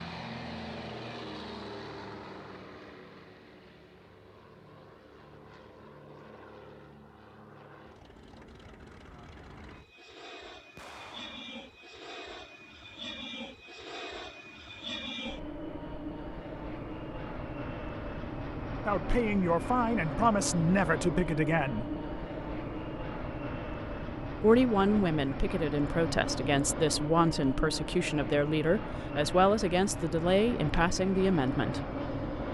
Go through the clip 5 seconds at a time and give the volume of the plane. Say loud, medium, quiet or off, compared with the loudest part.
medium, quiet, medium, loud, loud, loud, loud.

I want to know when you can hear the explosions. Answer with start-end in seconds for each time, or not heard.
10.8-11.8.